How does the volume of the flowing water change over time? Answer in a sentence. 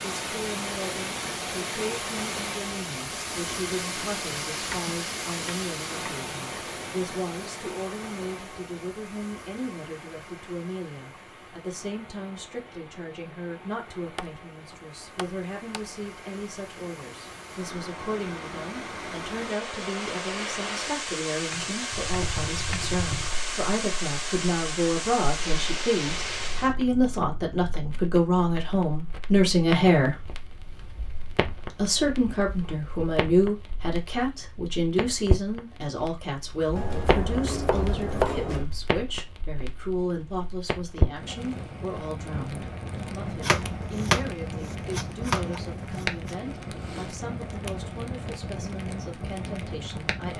The loudness of the flowing water goes down, then up.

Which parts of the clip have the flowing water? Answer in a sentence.
The flowing water can be heard from 0.0 to 26.8 s.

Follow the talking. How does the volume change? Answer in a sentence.
The volume of the talking goes up, then down.